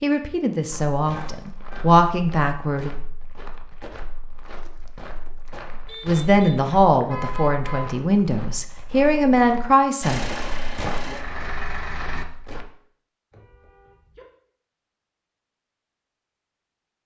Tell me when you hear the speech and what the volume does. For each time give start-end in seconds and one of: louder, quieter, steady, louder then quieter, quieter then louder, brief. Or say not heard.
0.0-3.0 brief
6.0-10.3 quieter then louder.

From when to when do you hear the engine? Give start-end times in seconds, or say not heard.
10.0-12.2.